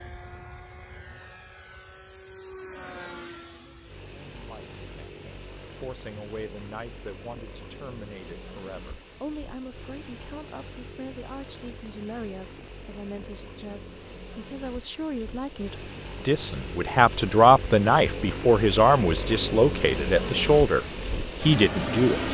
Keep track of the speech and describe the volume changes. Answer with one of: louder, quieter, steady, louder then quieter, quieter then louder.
louder.